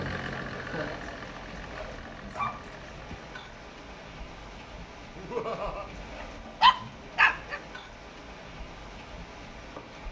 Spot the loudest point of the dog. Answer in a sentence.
The loudest moment of the dog is at 7 seconds.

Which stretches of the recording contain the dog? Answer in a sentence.
You can hear the dog from 1.7 to 3.2 s and from 6.6 to 7.6 s.